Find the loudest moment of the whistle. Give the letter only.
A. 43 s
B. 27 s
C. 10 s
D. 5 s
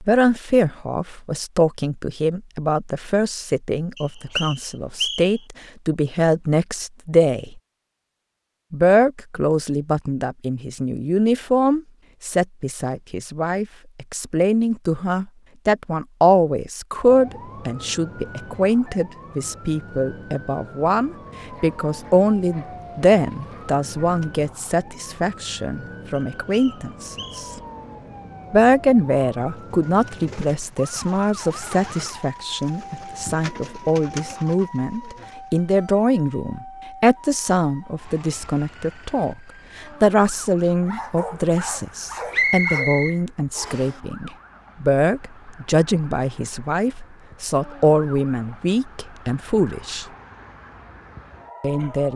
A.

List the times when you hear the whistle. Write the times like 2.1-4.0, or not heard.
4.0-5.3, 26.1-27.6, 42.3-44.0.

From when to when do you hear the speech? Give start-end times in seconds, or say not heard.
0.0-7.6, 8.7-27.5, 28.5-50.0, 51.6-52.1.